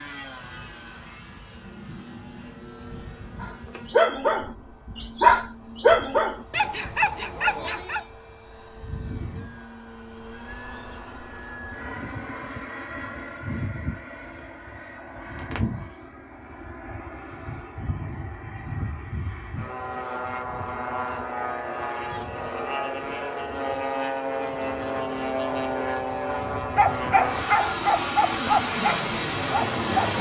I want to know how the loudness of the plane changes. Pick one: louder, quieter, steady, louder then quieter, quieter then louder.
louder.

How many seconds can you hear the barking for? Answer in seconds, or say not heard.
8 s.